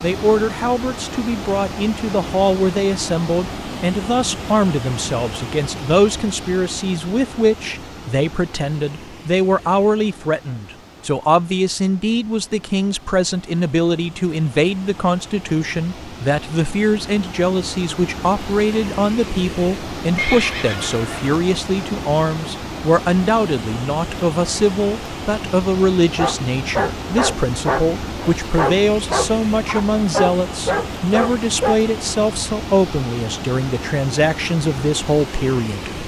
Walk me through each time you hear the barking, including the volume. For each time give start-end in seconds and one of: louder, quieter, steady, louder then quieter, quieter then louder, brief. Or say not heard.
26.1-31.8 steady.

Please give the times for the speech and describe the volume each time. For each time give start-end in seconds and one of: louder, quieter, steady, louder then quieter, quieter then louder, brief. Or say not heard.
0.0-36.0 steady.